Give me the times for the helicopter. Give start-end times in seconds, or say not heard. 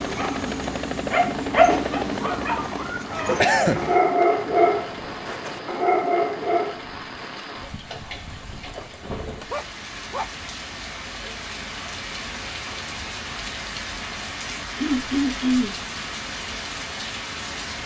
0.0-6.8.